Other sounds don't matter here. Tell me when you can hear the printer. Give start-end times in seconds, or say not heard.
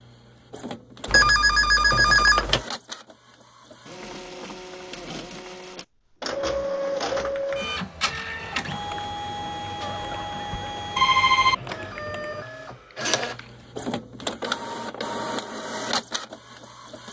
0.0-17.0.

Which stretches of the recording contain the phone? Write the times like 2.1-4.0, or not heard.
1.1-2.6, 9.8-11.6.